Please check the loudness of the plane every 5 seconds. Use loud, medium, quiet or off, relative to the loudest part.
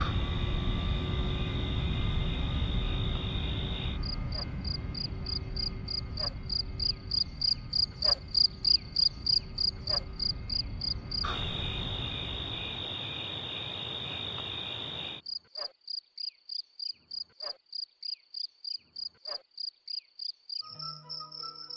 loud, medium, medium, off, off.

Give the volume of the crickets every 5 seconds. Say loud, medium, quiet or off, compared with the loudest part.
quiet, loud, medium, medium, quiet.